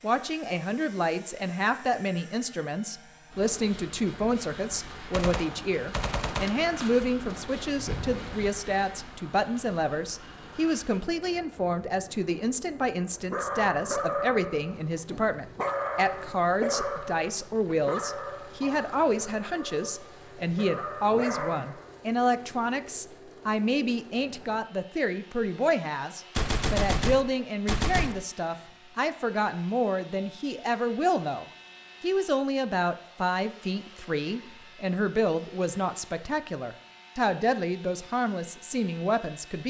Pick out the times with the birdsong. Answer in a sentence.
You can't hear the birdsong here.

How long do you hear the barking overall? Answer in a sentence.
The barking can be heard for 9 seconds in total.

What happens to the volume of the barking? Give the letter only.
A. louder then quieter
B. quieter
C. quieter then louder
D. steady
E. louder
C.